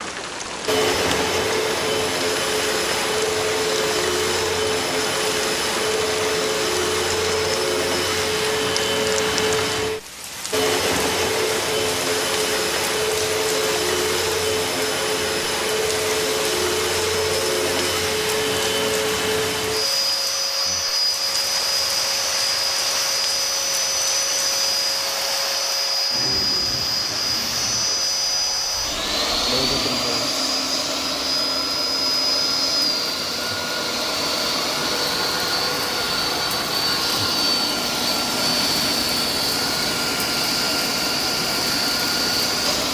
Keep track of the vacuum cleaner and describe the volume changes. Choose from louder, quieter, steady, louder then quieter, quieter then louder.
steady.